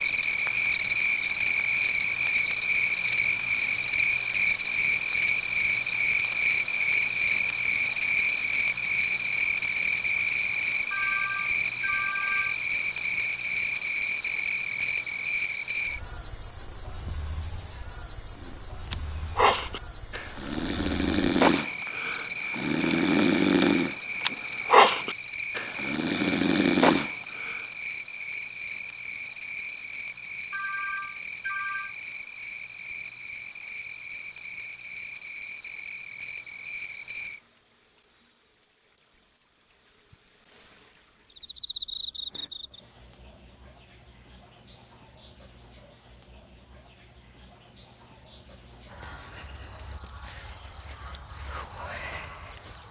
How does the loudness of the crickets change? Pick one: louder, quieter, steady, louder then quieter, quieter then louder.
quieter.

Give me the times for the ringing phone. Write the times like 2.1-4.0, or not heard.
10.9-12.6, 30.5-31.9.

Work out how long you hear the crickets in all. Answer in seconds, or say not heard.
53 s.